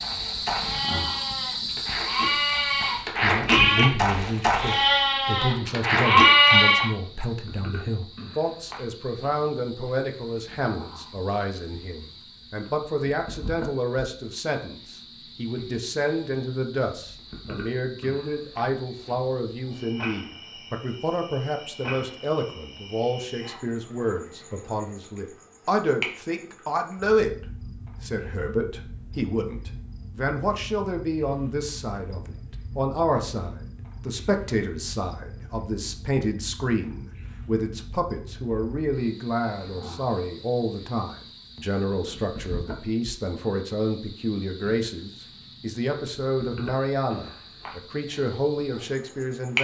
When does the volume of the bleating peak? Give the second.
6 s.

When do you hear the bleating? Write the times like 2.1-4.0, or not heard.
0.0-6.9.